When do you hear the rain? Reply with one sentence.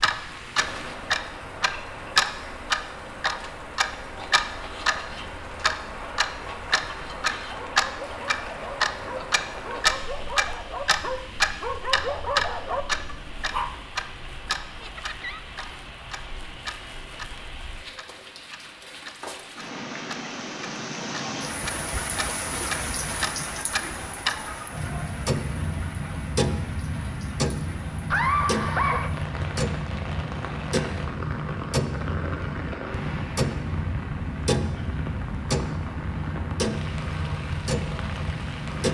The rain can be heard from 0.0 to 38.9 s.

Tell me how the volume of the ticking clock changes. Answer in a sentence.
The volume of the ticking clock goes down.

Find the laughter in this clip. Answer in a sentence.
You can hear the laughter from 9.2 to 10.0 s, from 14.8 to 15.4 s and from 28.1 to 29.1 s.